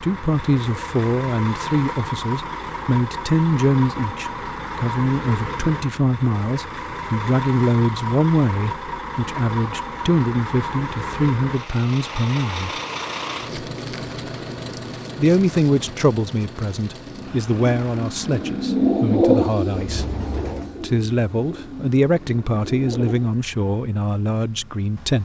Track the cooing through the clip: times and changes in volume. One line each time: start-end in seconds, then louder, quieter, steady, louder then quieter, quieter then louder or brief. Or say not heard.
17.1-23.3 louder then quieter.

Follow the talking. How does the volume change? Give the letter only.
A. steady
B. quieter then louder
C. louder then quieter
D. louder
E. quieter
A.